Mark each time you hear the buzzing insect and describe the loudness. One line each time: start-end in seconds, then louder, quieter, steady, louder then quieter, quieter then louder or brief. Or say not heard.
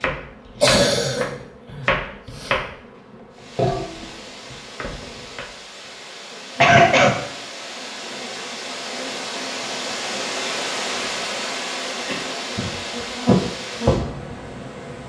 0.1-15.0 louder.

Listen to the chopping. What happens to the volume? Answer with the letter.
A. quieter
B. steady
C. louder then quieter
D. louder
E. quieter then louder
A.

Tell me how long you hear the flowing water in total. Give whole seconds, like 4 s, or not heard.
12 s.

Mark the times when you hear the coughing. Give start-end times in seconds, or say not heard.
0.6-2.6, 6.6-7.2, 11.9-12.4.